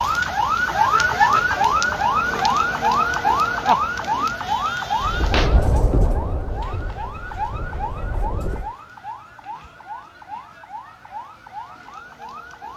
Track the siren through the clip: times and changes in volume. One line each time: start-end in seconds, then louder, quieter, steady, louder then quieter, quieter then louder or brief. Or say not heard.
0.0-12.7 quieter.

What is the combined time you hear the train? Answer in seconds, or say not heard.
4 s.